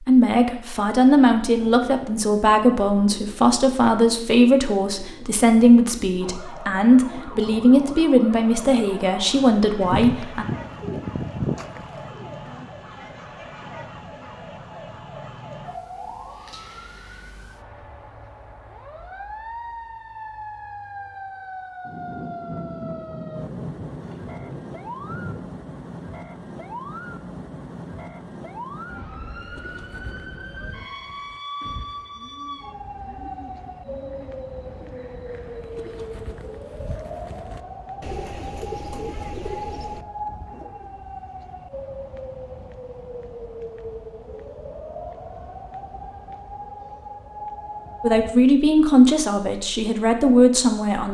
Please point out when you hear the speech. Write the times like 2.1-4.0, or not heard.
0.1-10.4, 48.0-51.1.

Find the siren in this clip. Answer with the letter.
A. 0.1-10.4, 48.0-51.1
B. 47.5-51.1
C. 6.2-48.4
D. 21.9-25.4
C.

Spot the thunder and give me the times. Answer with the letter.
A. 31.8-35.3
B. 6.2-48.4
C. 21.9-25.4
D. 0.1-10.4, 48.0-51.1
C.